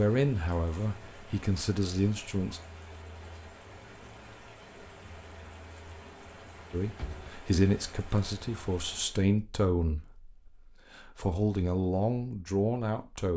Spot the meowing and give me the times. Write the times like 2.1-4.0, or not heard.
7.0-7.4.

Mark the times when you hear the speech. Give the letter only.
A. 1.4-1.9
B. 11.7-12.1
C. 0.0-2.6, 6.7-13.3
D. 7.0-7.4
C.